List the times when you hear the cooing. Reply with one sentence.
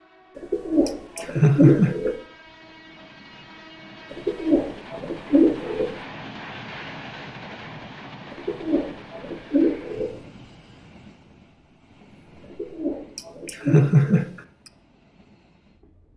You can hear the cooing from 0.3 to 2.1 s, from 4.1 to 5.9 s, from 8.3 to 10.2 s and from 12.4 to 14.3 s.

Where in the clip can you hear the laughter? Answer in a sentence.
The laughter can be heard from 0.8 to 1.9 s and from 13.2 to 14.7 s.